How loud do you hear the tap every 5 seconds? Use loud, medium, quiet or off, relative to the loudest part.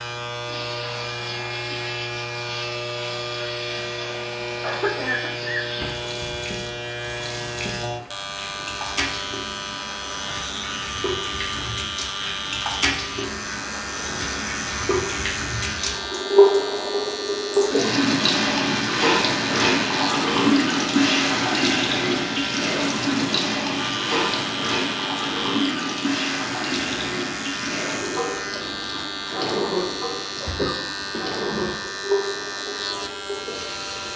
quiet, quiet, medium, loud, loud, medium, medium.